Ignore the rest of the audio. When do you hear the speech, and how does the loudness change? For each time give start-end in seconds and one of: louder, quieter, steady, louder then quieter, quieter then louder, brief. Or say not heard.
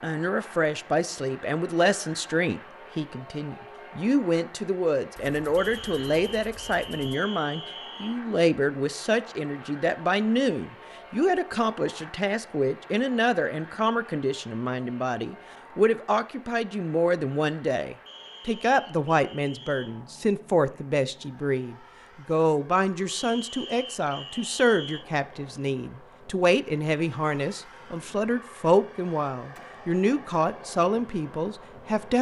0.0-32.1 steady.